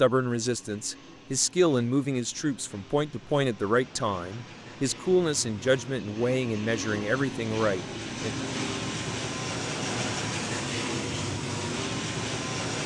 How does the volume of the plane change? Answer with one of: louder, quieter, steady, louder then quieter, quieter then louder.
louder.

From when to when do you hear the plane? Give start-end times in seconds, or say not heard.
0.0-12.8.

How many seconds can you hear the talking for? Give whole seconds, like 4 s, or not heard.
8 s.